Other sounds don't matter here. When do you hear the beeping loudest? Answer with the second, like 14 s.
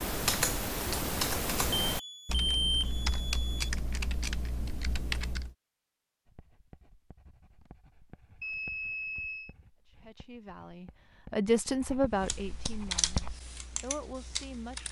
3 s.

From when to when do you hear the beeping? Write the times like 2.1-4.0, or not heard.
1.8-3.7, 8.4-9.6.